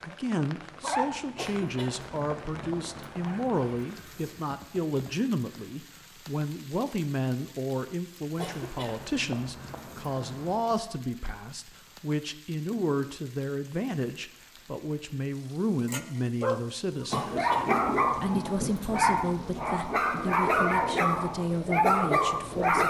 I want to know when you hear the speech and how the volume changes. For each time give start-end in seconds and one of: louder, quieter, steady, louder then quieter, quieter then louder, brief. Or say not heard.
0.0-22.8 steady.